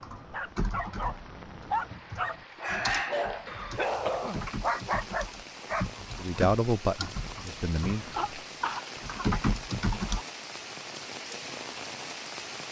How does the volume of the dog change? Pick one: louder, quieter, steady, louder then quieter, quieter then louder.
louder.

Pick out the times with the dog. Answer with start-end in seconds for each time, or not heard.
0.0-5.8.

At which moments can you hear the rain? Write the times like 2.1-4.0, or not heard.
0.0-12.6.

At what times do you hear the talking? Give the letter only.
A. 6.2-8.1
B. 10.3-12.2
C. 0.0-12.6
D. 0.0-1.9
A.